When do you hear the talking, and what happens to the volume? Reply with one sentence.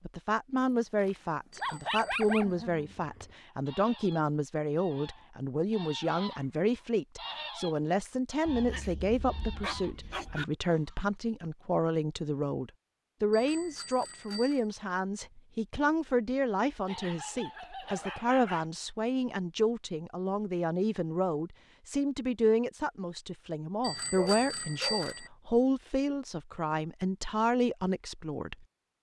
The talking can be heard from 0.1 to 28.6 s, at a steady volume.